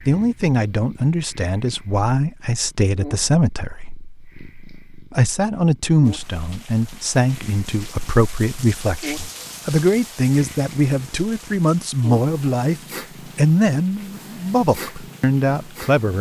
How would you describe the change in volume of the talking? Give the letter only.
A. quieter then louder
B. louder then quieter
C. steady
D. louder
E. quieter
C.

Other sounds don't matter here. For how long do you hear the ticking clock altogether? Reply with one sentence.
You can't hear the ticking clock here.